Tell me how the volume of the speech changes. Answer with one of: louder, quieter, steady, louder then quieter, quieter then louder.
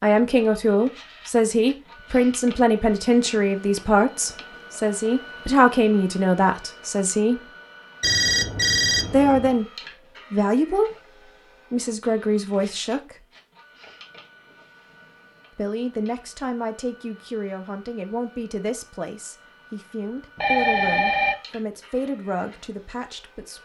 quieter.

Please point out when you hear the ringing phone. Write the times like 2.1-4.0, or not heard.
8.0-9.6, 20.4-21.4.